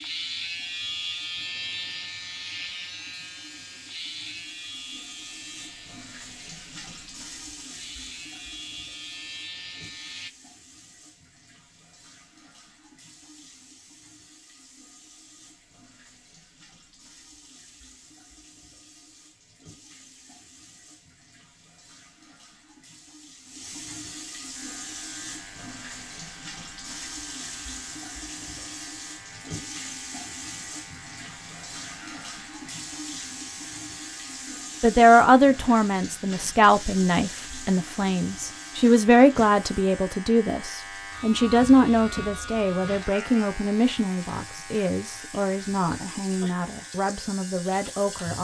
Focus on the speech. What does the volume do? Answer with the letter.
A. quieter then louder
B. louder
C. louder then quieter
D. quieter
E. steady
D.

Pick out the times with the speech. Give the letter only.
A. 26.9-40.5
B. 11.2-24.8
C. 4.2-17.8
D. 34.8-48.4
D.